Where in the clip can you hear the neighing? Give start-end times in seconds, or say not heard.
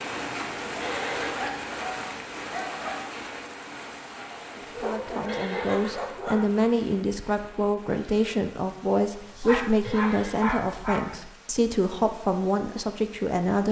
0.8-1.4, 5.2-6.0, 9.8-10.6.